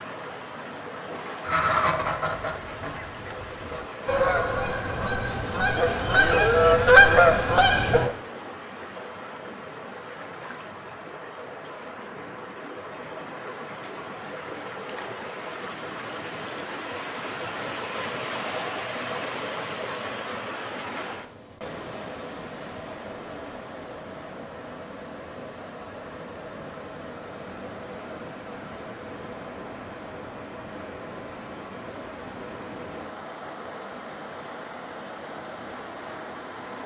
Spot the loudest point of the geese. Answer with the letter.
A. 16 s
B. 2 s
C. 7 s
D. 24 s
C.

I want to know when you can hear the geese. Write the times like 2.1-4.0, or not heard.
1.4-8.1.